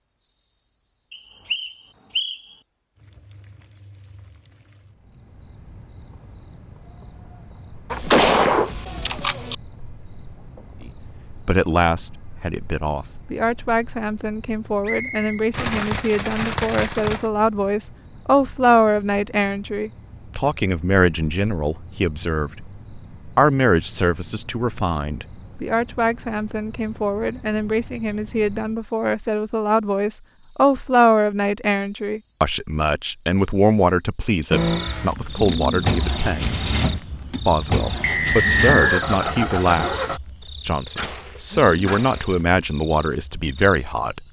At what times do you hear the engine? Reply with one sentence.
You can hear the engine from 34.5 to 40.2 s.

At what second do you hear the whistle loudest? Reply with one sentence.
The volume of the whistle peaks at 39 seconds.